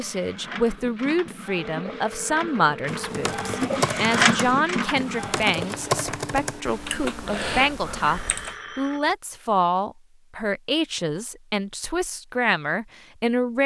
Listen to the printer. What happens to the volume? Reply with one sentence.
The loudness of the printer goes up, then down.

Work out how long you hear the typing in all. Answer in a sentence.
The typing can be heard for 6 seconds in total.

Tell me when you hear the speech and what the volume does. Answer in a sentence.
You can hear the speech from 0.0 to 13.6 s, at a steady volume.